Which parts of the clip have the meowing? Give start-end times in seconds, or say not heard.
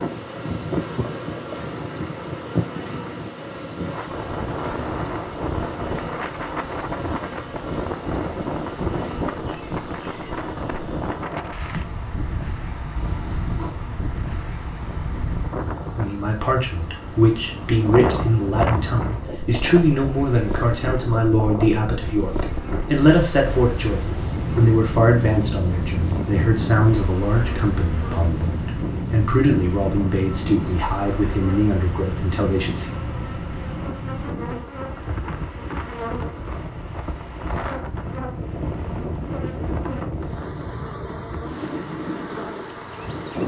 12.9-13.8.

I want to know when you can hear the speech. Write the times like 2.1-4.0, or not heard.
15.9-32.9.